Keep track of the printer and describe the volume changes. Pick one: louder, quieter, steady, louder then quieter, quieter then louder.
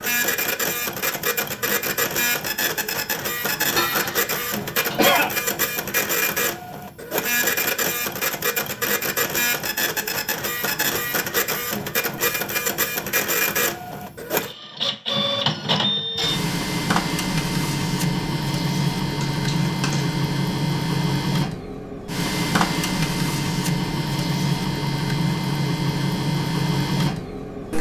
steady.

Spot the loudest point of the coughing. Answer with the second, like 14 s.
5 s.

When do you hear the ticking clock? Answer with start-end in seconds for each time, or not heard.
not heard.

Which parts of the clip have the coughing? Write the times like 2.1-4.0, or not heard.
3.8-5.3, 19.2-20.2.